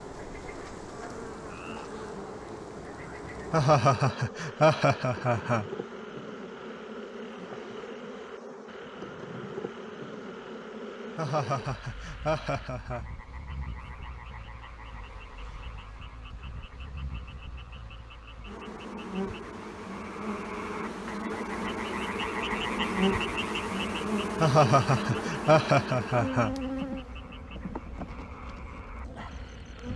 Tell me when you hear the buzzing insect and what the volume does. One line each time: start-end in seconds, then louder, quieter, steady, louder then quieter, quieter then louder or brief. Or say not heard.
0.0-29.9 quieter then louder.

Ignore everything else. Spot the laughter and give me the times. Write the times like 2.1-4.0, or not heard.
3.5-5.7, 11.2-13.1, 24.4-26.6.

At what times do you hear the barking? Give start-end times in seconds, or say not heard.
not heard.